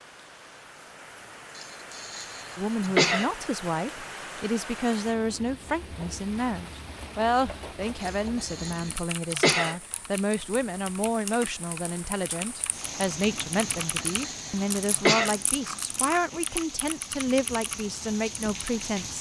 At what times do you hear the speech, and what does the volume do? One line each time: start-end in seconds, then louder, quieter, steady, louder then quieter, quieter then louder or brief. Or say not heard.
2.5-19.1 steady.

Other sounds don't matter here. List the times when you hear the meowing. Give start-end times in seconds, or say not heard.
not heard.